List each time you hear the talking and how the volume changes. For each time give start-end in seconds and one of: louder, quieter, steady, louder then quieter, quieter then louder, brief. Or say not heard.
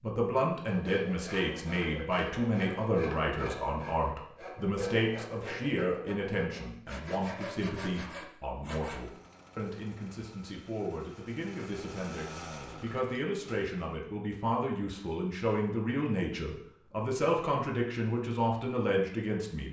0.0-19.6 quieter then louder.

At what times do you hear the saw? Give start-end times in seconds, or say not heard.
0.6-9.0.